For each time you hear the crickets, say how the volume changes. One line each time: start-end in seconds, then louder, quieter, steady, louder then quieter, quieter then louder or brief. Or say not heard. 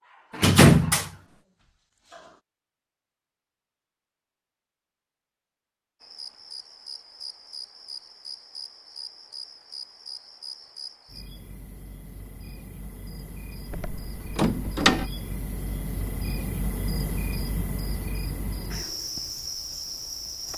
6.0-20.5 louder.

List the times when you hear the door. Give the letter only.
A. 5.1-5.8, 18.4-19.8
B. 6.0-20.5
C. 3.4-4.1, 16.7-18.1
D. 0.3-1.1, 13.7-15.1
D.